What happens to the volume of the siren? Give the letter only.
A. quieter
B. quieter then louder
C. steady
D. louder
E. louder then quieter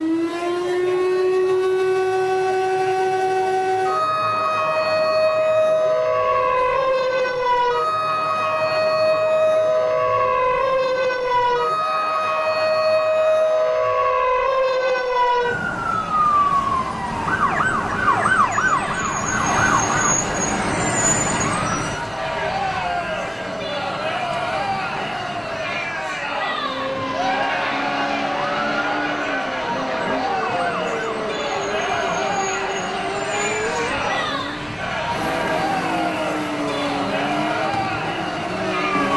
A.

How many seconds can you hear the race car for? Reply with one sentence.
The race car can be heard for 13 seconds in total.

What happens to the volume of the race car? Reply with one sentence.
The volume of the race car stays about the same.